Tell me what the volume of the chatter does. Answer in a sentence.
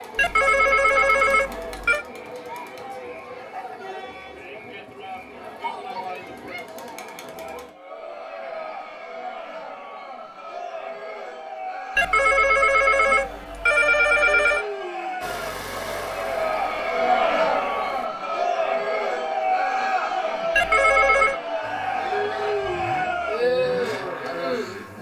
The loudness of the chatter goes up.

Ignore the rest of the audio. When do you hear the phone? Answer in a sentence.
The phone can be heard from 0.1 to 2.0 s, from 11.9 to 14.7 s and from 20.6 to 21.4 s.